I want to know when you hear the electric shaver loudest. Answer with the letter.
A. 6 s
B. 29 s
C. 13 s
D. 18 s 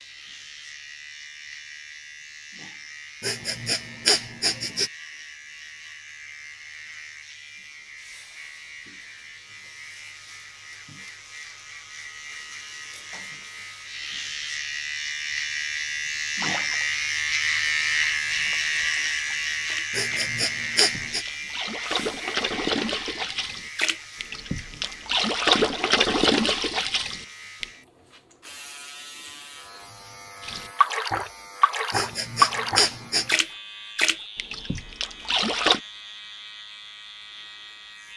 D.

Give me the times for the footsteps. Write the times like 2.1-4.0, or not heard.
not heard.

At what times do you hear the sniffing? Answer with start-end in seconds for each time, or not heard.
3.2-4.9, 19.9-21.2, 31.9-33.4.